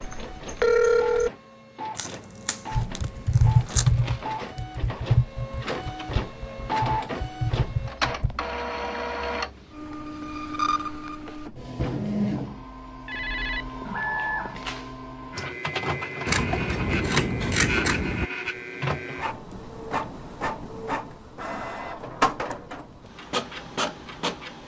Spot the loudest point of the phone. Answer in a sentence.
The loudest moment of the phone is at 1 second.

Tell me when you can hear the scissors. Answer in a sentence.
The scissors can be heard from 1.9 to 3.9 s and from 16.2 to 18.2 s.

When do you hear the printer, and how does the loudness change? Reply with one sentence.
You can hear the printer from 0.0 to 24.6 s, getting louder.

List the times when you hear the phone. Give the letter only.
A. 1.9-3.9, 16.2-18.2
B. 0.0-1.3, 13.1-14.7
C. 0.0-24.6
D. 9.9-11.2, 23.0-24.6
B.